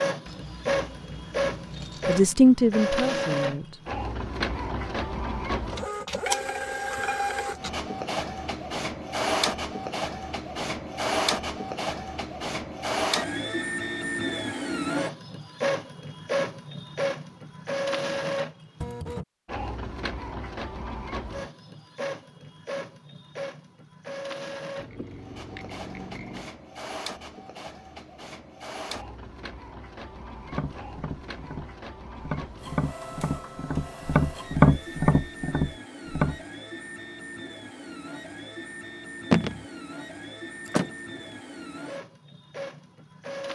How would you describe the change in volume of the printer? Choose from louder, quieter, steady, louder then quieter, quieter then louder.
quieter.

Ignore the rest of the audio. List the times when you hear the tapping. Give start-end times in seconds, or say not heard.
30.4-36.4.